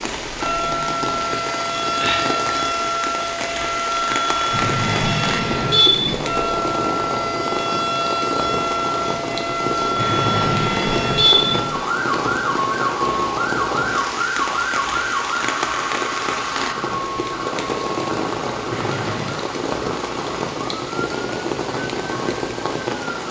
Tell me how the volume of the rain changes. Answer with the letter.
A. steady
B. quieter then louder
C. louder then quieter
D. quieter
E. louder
A.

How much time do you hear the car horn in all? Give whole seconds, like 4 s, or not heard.
4 s.